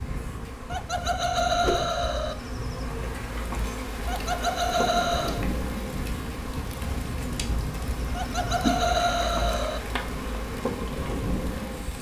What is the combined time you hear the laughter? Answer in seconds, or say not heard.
5 s.